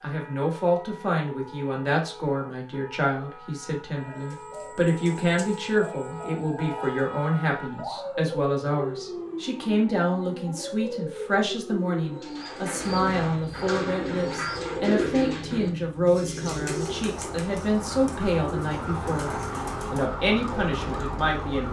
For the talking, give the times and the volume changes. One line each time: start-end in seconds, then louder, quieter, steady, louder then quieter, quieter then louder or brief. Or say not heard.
0.0-21.6 steady.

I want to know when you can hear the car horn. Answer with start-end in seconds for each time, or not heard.
not heard.